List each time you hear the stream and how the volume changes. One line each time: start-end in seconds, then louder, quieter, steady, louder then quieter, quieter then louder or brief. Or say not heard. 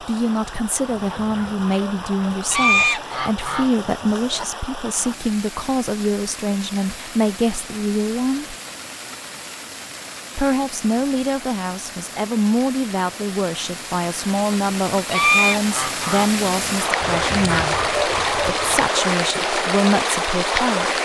0.0-21.0 louder.